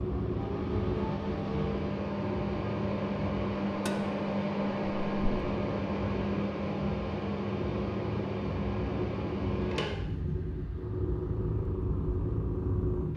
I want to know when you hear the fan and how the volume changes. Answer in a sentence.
The fan can be heard from 0.0 to 13.1 s, getting quieter.